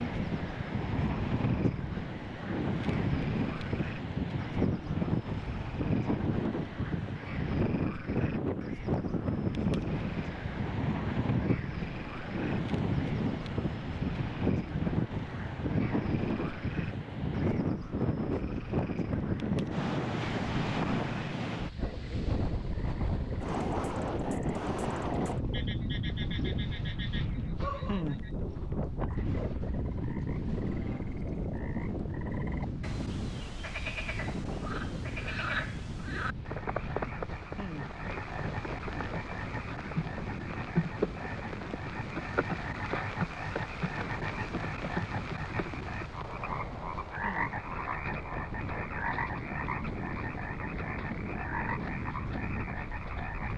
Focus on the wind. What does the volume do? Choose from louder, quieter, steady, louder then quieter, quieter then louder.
quieter.